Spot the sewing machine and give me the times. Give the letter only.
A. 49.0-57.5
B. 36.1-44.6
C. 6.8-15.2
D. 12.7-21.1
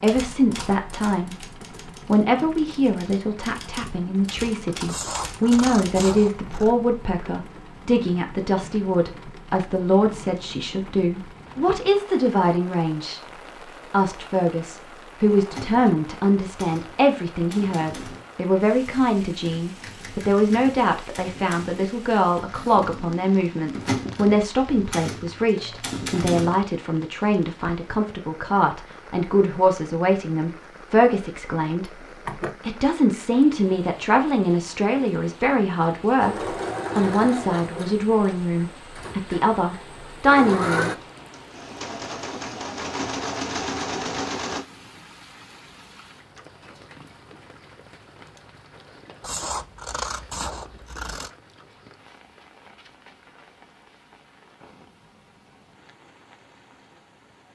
B.